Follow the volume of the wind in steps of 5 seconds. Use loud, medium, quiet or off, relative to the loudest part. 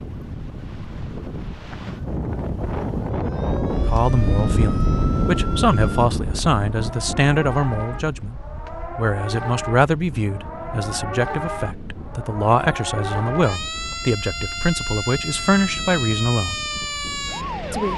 loud, loud, quiet, quiet.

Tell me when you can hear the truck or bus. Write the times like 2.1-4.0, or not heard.
not heard.